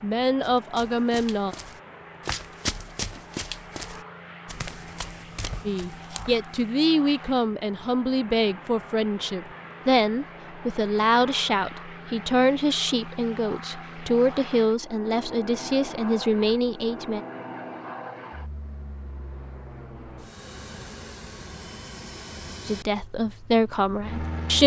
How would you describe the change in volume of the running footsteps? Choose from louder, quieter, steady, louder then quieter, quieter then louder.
louder then quieter.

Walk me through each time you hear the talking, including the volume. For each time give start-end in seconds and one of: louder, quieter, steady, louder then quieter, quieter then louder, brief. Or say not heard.
0.0-1.6 brief
5.7-17.2 steady
22.6-24.6 brief.